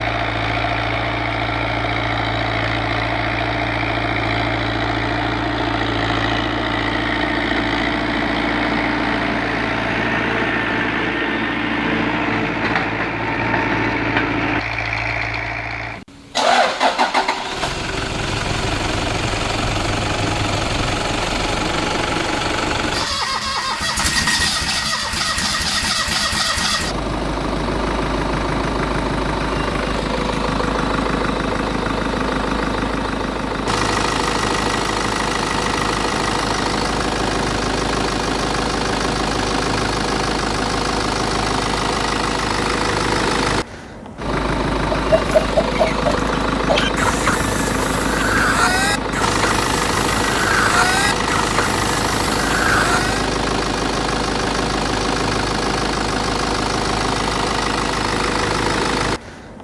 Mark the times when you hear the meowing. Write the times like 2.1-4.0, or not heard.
not heard.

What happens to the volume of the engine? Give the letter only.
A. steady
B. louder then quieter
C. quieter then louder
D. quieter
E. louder
A.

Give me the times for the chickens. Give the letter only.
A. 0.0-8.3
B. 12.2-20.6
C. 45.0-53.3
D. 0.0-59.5
C.